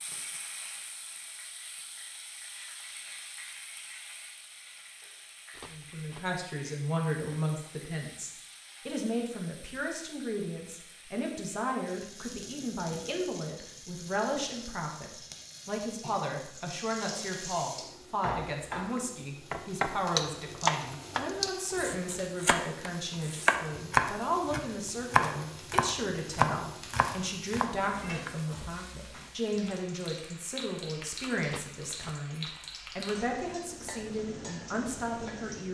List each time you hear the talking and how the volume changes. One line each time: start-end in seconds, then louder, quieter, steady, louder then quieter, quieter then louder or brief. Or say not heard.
5.7-35.6 steady.